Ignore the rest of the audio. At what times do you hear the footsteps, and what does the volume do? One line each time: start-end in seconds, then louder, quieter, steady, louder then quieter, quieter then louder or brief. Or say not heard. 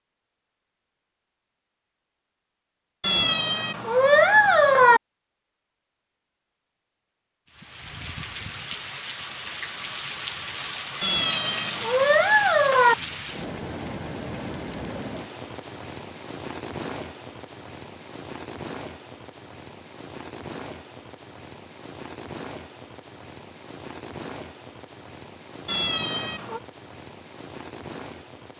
not heard.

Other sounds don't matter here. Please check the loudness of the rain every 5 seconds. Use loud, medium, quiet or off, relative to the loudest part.
off, loud, loud, medium, medium, medium.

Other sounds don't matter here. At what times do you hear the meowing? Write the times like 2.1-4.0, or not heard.
3.0-5.0, 11.0-12.9, 25.6-26.6.